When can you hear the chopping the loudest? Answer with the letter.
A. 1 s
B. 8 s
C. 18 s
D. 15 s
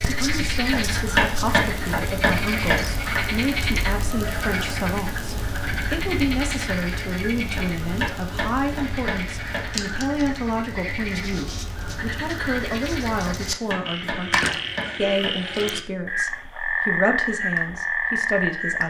A.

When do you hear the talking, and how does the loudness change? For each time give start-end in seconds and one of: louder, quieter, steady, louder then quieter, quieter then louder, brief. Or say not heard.
0.0-18.8 steady.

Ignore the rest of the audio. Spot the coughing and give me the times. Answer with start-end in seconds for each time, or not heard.
not heard.